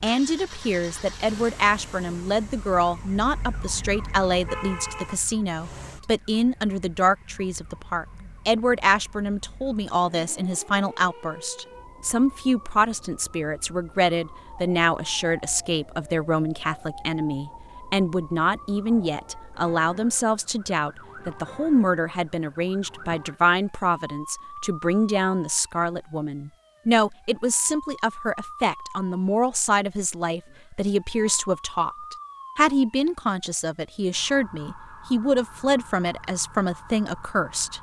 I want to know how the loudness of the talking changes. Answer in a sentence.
The loudness of the talking stays about the same.